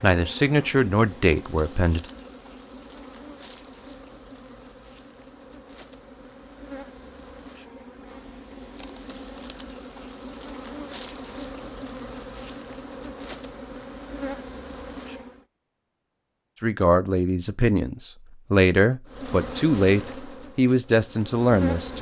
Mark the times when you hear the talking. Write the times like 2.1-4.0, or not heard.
0.0-2.0, 16.6-21.9.